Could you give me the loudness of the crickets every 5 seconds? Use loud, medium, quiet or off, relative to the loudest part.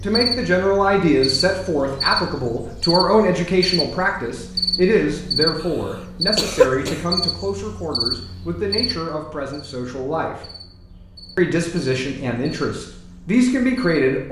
loud, loud, quiet.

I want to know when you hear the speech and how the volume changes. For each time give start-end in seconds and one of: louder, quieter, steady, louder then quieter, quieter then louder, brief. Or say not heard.
0.0-10.3 quieter
11.3-14.2 brief.